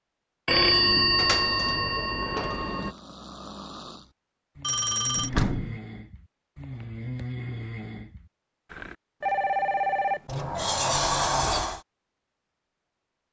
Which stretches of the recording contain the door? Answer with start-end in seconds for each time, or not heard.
0.7-2.6, 5.2-5.8, 10.2-11.8.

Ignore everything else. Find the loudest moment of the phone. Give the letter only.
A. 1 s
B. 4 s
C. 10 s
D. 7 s
A.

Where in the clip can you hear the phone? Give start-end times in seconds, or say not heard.
0.5-2.9, 4.6-5.3, 9.2-10.2.